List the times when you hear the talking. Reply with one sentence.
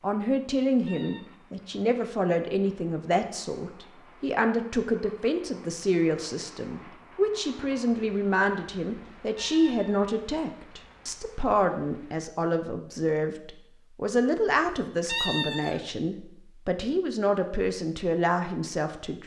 You can hear the talking from 0.0 to 19.2 s.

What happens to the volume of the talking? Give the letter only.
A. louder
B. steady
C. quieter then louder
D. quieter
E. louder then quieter
B.